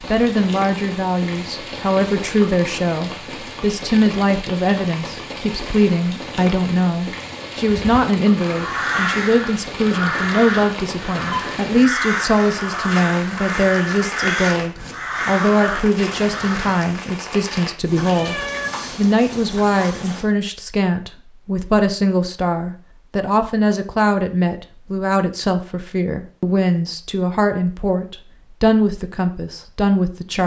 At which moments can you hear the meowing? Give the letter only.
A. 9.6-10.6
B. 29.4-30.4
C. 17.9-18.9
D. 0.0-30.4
C.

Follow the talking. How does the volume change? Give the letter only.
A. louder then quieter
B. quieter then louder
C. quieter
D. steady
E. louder
D.